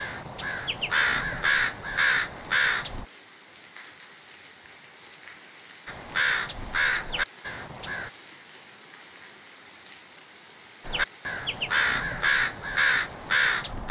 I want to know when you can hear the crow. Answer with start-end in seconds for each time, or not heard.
0.0-3.0, 5.8-8.1, 10.8-13.8.